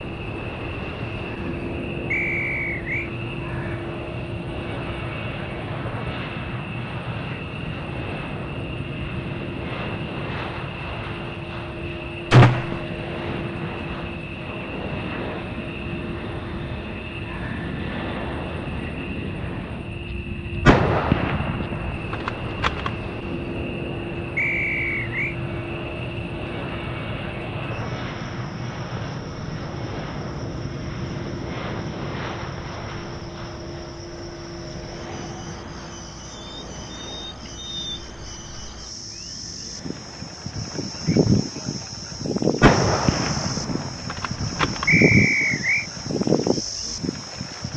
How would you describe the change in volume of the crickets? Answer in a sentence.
The loudness of the crickets goes up.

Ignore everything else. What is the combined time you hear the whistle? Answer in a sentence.
The whistle can be heard for 3 seconds in total.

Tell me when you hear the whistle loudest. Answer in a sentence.
The volume of the whistle peaks at 45 seconds.